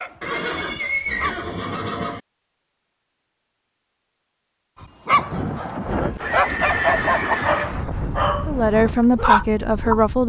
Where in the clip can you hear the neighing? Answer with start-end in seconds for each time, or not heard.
0.2-2.2, 6.2-7.7.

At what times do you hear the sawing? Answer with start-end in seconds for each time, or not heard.
not heard.